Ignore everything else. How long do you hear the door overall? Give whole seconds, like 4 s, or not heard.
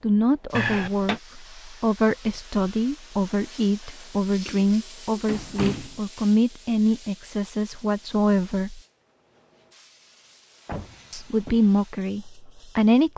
3 s.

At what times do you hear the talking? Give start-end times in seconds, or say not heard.
0.0-8.8, 11.1-13.1.